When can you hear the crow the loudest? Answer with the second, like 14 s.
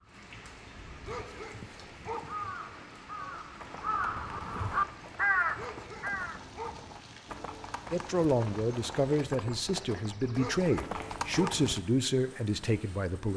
5 s.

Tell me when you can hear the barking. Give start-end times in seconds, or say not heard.
1.1-2.4, 5.5-6.9, 10.3-11.7.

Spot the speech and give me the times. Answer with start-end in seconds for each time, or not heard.
7.9-13.3.